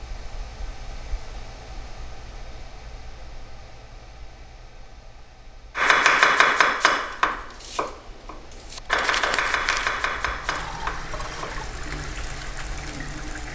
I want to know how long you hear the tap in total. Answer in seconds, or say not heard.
3 s.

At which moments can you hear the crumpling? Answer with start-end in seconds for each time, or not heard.
8.9-10.0.